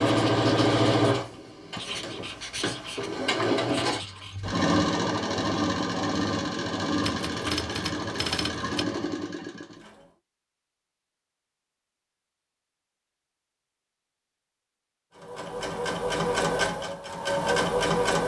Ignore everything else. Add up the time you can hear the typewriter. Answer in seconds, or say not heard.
2 s.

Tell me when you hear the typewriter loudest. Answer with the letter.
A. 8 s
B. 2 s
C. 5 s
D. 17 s
A.